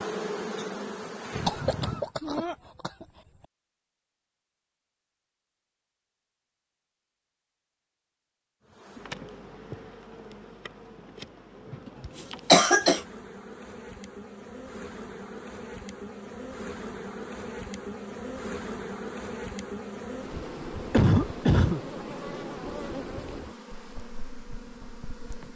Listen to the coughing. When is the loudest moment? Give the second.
13 s.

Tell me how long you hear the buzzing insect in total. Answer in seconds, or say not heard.
19 s.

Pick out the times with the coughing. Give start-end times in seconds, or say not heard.
1.4-3.0, 12.5-13.0, 20.9-21.8.